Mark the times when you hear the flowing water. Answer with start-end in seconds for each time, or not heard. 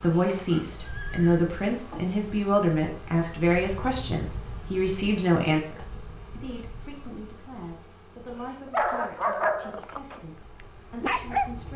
not heard.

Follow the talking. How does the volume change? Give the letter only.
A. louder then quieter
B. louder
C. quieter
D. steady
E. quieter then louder
C.